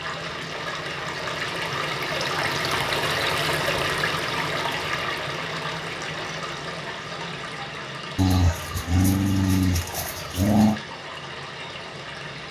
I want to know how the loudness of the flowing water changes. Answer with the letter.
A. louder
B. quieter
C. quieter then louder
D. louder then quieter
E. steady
B.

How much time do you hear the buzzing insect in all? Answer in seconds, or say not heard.
not heard.